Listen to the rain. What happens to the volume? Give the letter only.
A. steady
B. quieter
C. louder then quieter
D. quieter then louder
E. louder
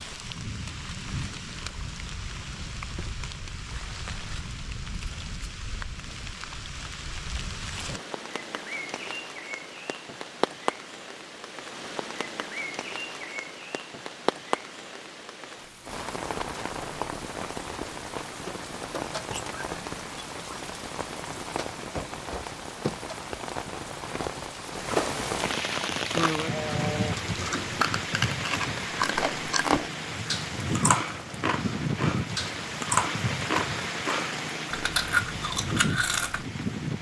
E.